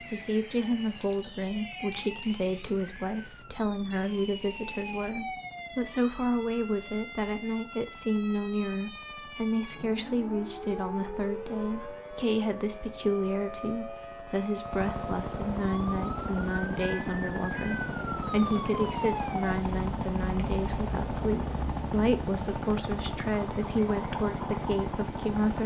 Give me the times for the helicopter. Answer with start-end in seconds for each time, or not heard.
0.0-25.6.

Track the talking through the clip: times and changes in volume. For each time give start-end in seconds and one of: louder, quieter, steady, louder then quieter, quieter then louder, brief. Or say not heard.
0.0-25.6 steady.